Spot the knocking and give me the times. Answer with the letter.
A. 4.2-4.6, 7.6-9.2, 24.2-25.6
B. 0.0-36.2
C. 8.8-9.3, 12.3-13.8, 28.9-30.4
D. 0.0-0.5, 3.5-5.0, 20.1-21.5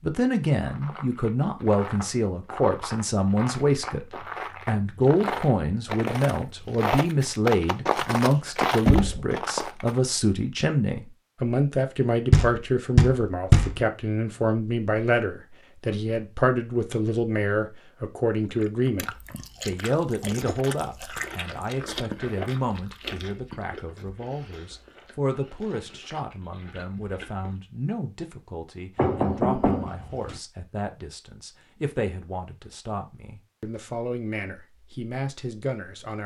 C.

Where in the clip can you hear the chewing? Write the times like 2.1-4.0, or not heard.
0.5-10.0, 18.5-27.8.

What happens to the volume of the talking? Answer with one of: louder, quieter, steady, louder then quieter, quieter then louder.
quieter.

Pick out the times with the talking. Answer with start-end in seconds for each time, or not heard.
0.0-36.2.